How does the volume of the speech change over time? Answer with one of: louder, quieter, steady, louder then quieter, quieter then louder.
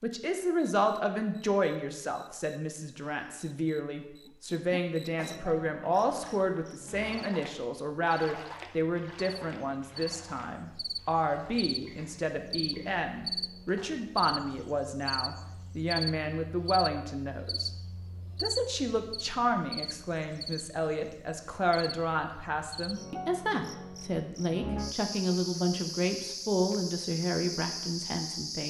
steady.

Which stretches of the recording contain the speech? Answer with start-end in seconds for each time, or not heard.
0.0-17.7, 18.4-28.6.